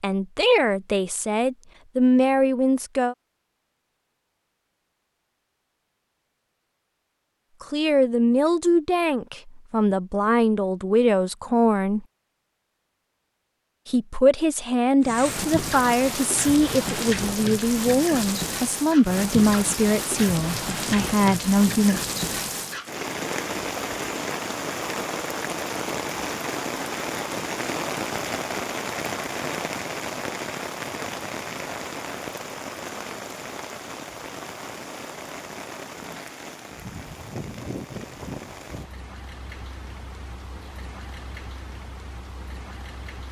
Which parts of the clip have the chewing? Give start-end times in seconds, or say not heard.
not heard.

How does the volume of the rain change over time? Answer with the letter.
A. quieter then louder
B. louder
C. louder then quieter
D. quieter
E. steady
D.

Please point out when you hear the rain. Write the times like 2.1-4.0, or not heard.
15.0-43.2.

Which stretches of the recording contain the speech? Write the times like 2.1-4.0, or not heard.
0.0-3.1, 7.6-12.1, 13.8-22.0.